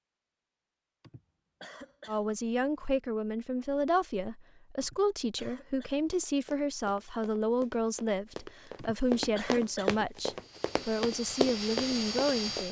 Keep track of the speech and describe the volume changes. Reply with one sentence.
The loudness of the speech stays about the same.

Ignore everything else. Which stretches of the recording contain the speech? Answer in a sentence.
The speech can be heard from 2.0 to 12.6 s.